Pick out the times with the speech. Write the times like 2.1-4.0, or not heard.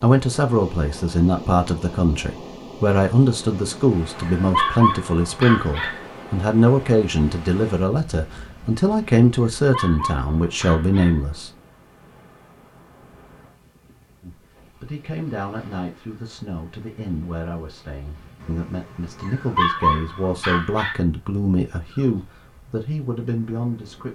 0.0-11.5, 14.2-24.1.